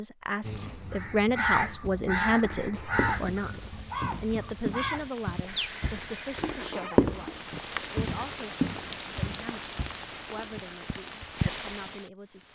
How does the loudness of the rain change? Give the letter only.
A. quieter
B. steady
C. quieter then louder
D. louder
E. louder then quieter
D.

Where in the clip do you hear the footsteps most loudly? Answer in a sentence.
The loudest moment of the footsteps is at 7 seconds.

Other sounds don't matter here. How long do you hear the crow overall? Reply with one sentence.
The crow can be heard for 6 seconds in total.